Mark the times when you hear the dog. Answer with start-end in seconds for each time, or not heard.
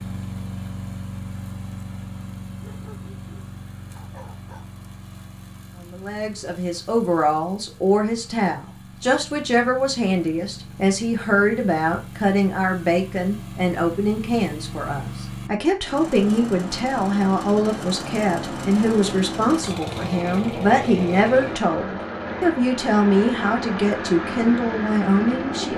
2.6-4.7.